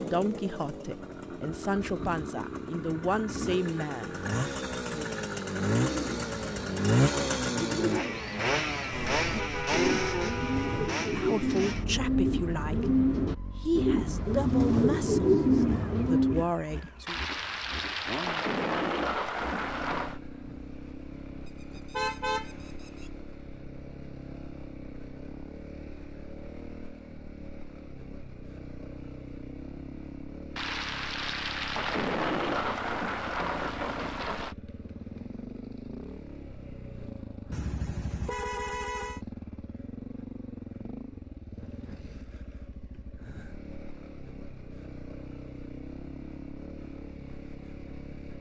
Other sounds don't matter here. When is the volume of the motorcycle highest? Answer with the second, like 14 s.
7 s.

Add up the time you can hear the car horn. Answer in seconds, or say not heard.
5 s.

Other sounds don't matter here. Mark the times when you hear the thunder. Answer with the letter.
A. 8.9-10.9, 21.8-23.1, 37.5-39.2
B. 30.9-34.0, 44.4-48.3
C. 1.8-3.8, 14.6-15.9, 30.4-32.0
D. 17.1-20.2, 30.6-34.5
D.